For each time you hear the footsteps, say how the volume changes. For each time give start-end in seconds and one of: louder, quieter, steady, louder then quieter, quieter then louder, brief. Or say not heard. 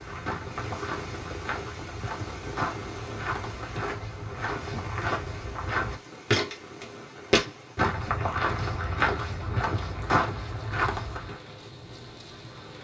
0.0-11.4 louder.